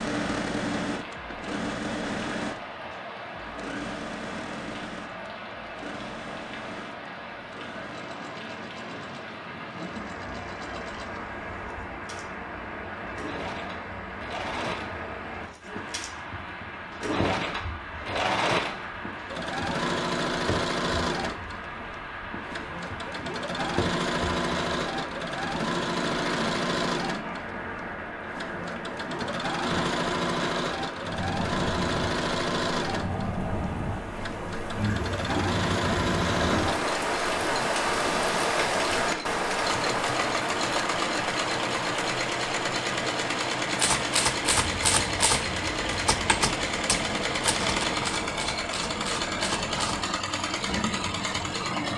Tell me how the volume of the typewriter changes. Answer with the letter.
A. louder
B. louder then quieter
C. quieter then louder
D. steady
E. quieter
E.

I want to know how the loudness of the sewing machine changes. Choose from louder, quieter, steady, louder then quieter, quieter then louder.
louder.